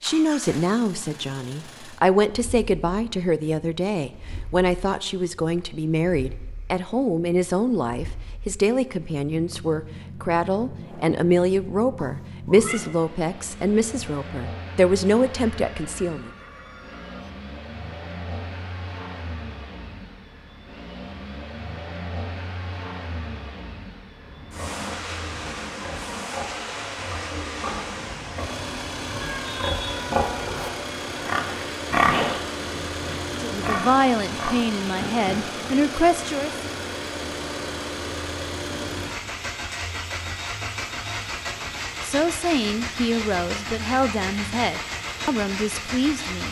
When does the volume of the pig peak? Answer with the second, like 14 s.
32 s.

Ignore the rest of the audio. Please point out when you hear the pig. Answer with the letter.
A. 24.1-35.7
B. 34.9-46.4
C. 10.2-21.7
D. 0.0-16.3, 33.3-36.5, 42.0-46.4
A.